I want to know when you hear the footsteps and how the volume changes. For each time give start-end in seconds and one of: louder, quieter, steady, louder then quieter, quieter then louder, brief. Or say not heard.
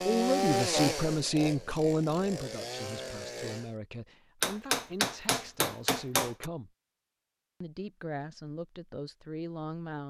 not heard.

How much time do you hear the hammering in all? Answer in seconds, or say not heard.
2 s.